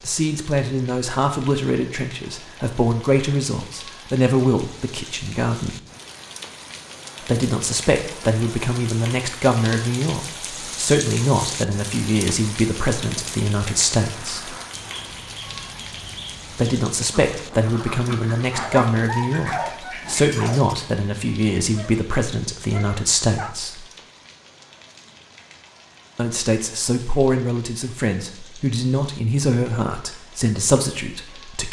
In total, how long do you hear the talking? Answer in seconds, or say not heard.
26 s.